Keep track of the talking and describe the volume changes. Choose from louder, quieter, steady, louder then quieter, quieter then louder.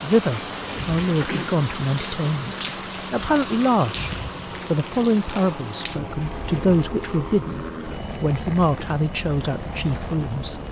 steady.